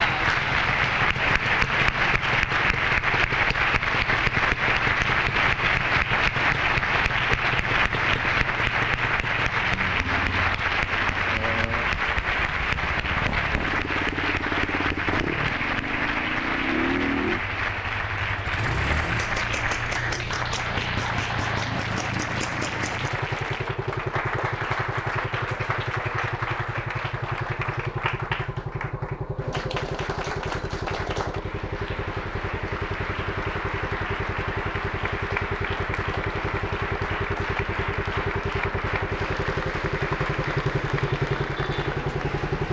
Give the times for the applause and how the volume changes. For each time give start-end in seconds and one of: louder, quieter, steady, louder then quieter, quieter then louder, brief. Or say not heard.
0.0-42.6 quieter.